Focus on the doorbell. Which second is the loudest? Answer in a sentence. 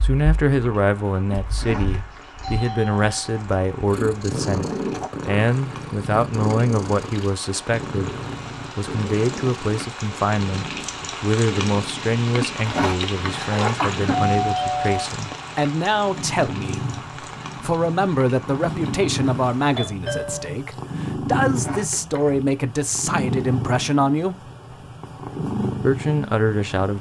The loudest moment of the doorbell is at 15 seconds.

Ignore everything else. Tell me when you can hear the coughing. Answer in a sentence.
You can hear the coughing from 1.4 to 2.2 s, from 12.3 to 14.2 s and from 21.4 to 22.4 s.